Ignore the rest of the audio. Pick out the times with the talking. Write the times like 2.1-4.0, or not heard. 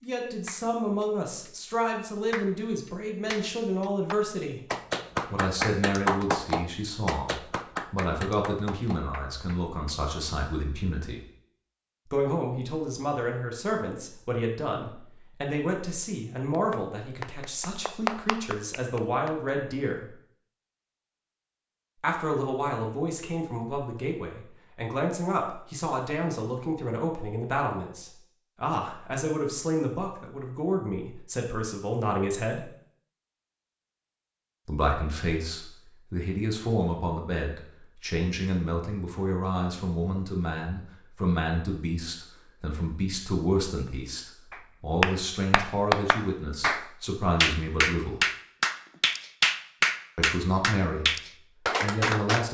0.0-11.2, 12.1-20.1, 22.0-32.7, 34.6-48.2, 50.1-51.1, 51.8-52.4.